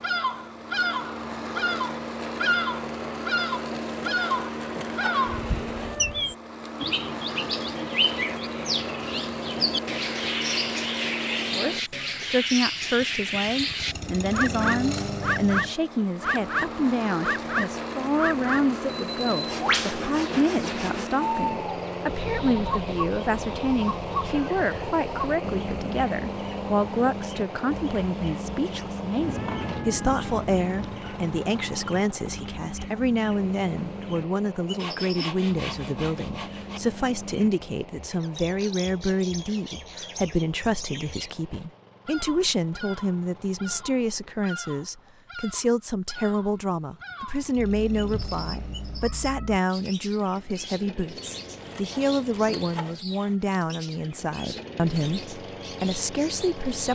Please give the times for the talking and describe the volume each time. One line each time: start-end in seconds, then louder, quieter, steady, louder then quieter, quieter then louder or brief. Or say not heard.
11.6-56.9 steady.